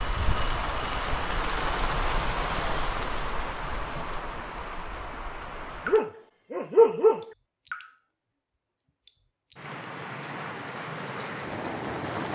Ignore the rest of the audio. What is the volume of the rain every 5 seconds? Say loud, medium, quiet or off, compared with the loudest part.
loud, medium, loud.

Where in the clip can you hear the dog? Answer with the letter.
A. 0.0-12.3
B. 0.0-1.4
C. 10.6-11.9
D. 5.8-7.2
D.